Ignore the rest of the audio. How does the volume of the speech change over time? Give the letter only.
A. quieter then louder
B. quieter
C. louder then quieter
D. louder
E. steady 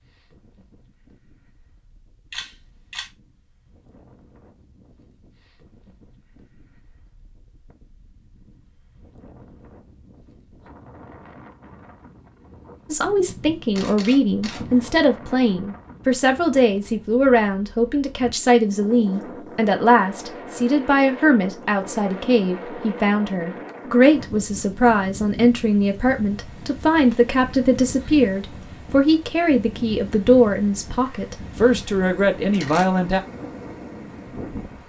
E.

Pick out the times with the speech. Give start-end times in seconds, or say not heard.
12.9-33.2.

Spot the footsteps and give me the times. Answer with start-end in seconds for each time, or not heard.
not heard.